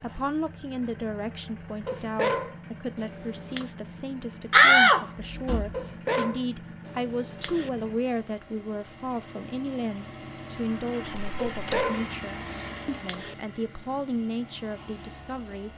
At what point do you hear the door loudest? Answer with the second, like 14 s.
5 s.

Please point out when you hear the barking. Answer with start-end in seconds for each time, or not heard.
1.9-3.7, 5.7-7.7, 11.3-13.3.